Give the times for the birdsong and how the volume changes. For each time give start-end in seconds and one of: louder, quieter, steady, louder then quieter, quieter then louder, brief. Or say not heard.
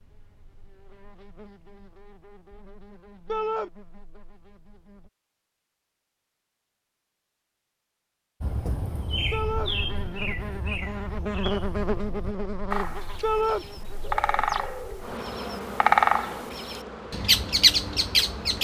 8.4-18.5 quieter then louder.